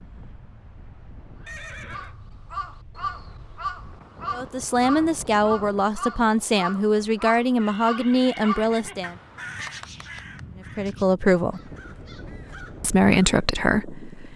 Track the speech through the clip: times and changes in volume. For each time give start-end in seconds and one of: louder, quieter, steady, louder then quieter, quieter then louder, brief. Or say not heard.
4.3-9.2 steady
10.8-11.6 brief
12.8-14.3 brief.